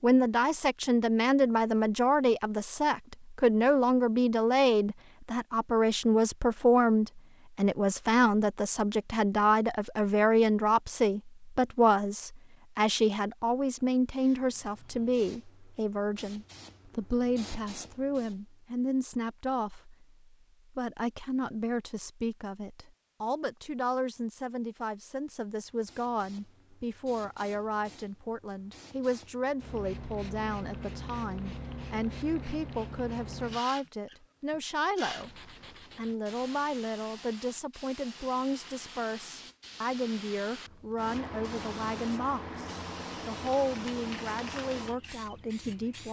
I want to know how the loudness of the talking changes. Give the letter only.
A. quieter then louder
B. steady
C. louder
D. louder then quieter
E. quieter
E.